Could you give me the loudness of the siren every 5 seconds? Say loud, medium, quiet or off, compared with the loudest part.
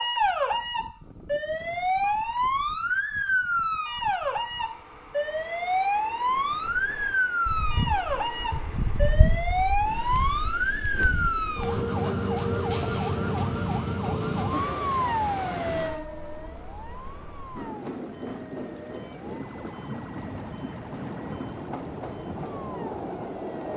loud, loud, loud, medium, quiet.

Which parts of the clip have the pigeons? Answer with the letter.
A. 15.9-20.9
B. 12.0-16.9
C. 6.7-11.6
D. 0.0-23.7
C.